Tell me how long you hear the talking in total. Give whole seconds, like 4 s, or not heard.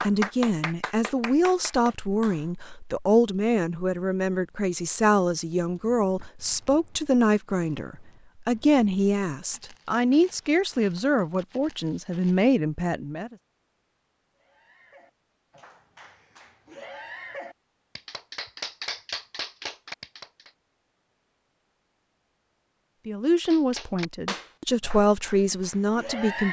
17 s.